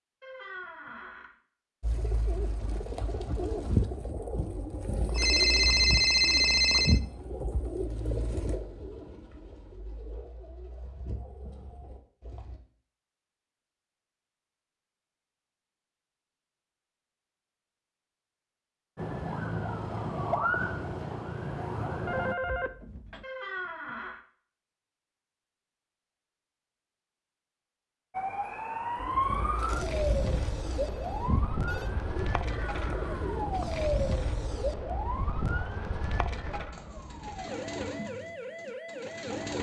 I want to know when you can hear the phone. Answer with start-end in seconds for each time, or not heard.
5.0-7.0, 22.1-23.2, 29.6-31.9.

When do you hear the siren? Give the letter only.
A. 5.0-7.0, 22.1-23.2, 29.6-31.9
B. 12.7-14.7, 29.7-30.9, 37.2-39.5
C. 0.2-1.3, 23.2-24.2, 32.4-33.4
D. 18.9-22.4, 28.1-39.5
D.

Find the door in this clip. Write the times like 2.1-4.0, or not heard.
0.2-1.3, 23.2-24.2, 32.4-33.4.